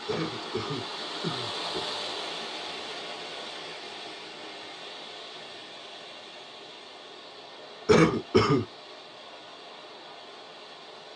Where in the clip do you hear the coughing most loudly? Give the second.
8 s.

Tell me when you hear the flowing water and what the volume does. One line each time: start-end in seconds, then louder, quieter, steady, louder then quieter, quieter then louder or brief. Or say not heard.
0.0-11.1 quieter.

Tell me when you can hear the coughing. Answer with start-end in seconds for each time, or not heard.
0.1-1.9, 7.8-8.7.